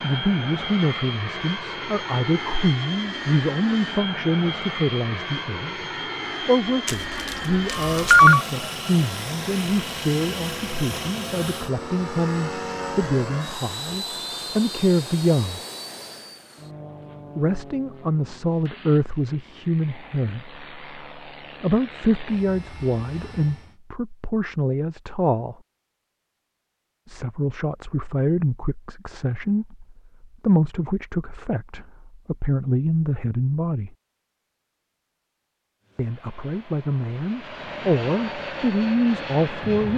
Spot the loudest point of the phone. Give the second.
8 s.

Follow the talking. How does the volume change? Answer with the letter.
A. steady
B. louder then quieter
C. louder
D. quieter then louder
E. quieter
A.